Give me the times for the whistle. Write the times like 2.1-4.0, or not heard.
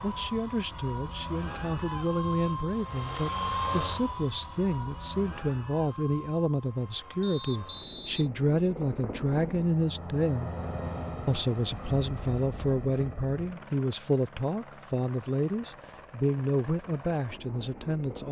7.2-8.3.